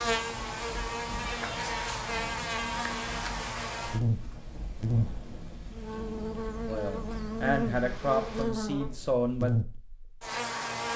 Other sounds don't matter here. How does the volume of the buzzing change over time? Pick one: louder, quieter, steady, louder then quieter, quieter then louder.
steady.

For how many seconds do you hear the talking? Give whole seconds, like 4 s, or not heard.
3 s.